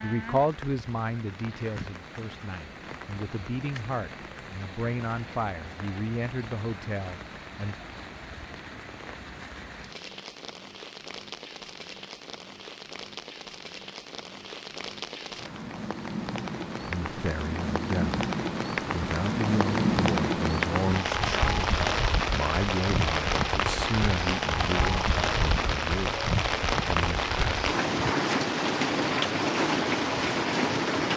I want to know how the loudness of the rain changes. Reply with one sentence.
The loudness of the rain goes up.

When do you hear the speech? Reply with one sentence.
The speech can be heard from 0.0 to 7.8 s, from 16.8 to 18.2 s and from 18.9 to 27.2 s.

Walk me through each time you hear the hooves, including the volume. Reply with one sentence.
The hooves can't be heard in this clip.